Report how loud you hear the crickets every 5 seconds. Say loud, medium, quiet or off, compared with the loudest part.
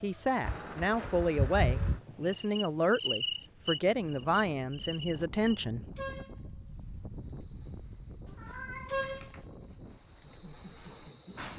loud, medium, loud.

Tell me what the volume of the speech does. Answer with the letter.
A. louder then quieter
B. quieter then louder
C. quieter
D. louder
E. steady
E.